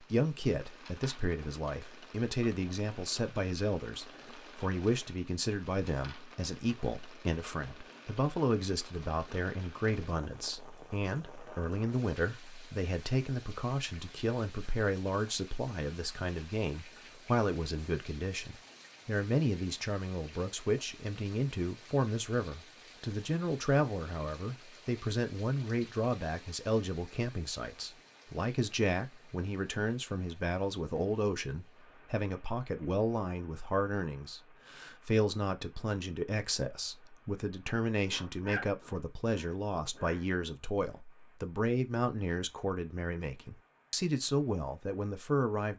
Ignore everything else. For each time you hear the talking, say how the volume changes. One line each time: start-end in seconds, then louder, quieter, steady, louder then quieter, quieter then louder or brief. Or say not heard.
0.0-45.7 steady.